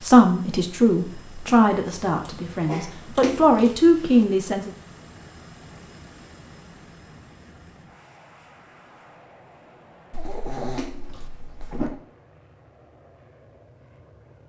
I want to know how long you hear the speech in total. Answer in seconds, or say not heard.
5 s.